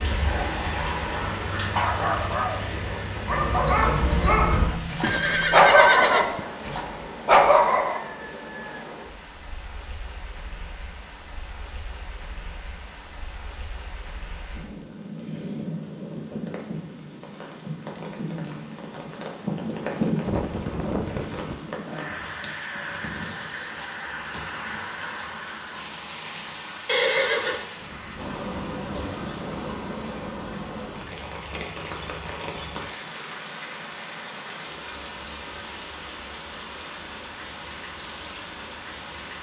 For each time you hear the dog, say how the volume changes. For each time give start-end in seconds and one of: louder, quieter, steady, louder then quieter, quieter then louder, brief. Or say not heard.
0.1-8.0 louder.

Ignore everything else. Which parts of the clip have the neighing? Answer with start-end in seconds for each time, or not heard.
5.0-6.4, 20.2-21.6, 26.9-27.6.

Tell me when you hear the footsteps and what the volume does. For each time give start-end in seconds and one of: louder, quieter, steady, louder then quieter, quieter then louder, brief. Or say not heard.
not heard.